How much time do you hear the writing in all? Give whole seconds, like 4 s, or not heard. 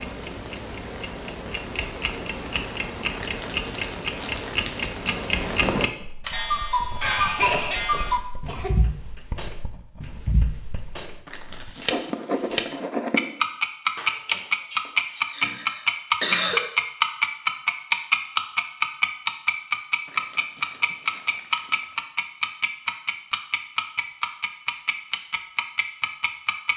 7 s.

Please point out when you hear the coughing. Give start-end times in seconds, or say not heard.
7.0-8.7, 13.9-16.6.